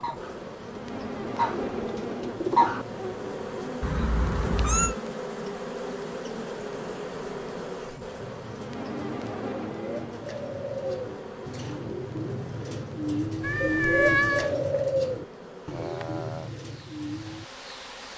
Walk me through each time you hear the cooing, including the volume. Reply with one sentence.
You can hear the cooing briefly from 0.0 to 2.9 s; and from 8.2 to 17.4 s, getting louder then quieter.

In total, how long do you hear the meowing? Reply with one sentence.
The meowing can be heard for 2 seconds in total.